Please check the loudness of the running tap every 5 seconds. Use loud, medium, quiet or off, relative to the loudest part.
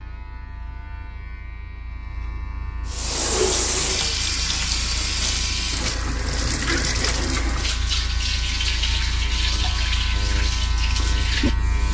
loud, loud, medium.